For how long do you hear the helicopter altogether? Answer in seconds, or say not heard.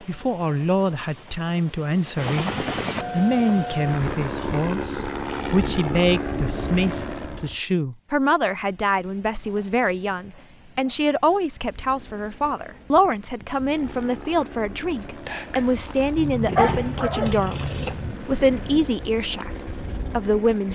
17 s.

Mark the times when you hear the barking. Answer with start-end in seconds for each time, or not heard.
16.1-18.1.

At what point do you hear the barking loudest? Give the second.
17 s.